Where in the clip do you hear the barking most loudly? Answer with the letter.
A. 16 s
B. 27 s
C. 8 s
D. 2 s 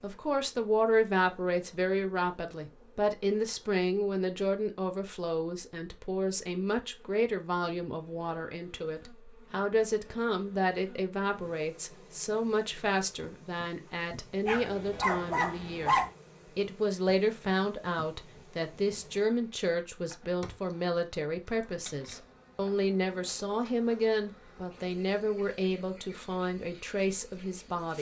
A.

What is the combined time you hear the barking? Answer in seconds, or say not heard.
2 s.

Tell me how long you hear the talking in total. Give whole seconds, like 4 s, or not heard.
27 s.